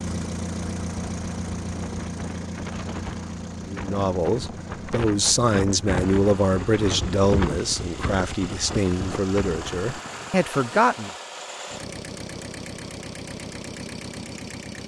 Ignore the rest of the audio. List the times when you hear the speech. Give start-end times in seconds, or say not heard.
3.6-11.1.